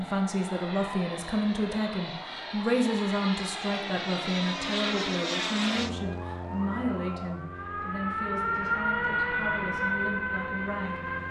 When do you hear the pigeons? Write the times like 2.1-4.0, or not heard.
not heard.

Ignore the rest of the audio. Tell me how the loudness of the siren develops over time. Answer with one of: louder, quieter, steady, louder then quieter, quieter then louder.
louder.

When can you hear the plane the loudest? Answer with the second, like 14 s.
5 s.